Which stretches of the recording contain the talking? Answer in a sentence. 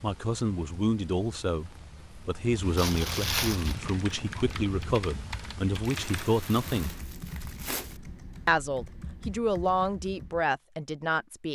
You can hear the talking from 0.0 to 7.0 s and from 8.4 to 11.5 s.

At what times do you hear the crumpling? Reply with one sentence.
The crumpling can be heard from 2.8 to 3.8 s and from 6.6 to 8.0 s.